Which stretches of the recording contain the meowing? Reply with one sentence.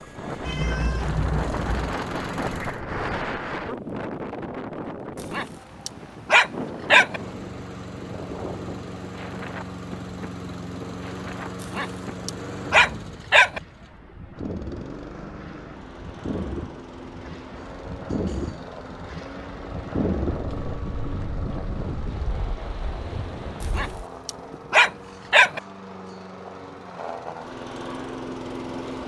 You can hear the meowing from 0.4 to 1.9 s.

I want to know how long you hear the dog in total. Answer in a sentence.
The dog can be heard for 6 seconds in total.